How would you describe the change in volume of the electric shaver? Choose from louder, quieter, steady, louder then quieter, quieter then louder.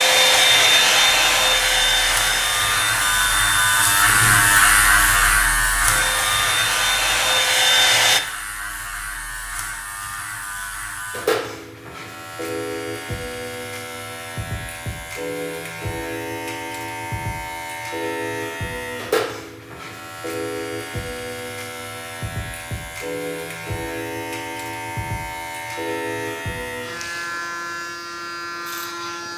quieter.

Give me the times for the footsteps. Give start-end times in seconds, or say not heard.
not heard.